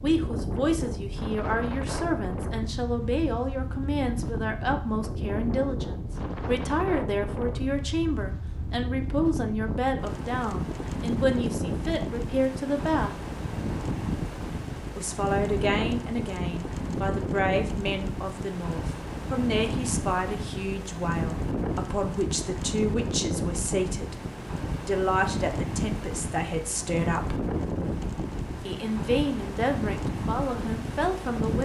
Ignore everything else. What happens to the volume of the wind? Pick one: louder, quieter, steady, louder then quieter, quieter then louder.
steady.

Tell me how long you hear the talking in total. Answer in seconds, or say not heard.
28 s.